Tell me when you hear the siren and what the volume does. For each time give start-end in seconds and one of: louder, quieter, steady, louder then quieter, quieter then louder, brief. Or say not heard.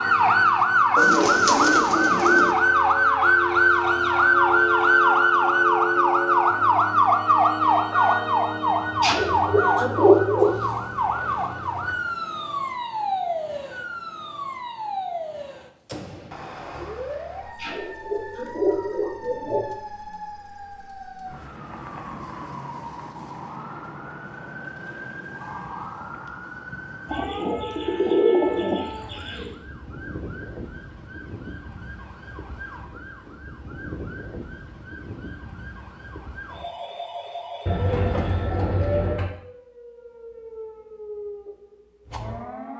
0.0-42.7 quieter.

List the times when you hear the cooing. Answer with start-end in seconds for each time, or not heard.
0.9-2.5, 9.0-10.6, 17.6-19.6, 27.1-29.6, 37.6-39.3.